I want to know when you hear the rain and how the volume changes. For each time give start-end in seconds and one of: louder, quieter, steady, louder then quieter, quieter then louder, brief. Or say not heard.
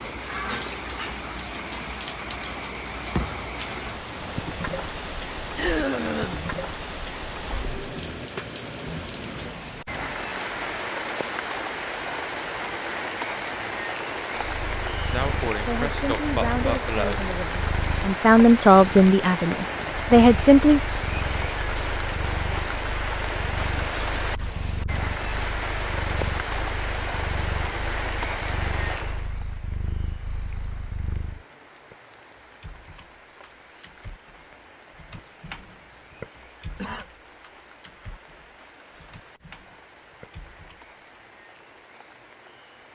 0.0-42.9 quieter.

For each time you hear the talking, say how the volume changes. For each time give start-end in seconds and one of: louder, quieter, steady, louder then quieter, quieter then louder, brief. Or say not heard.
15.7-20.8 quieter then louder.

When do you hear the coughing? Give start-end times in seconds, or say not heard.
5.5-6.5, 15.1-17.2, 36.4-37.0.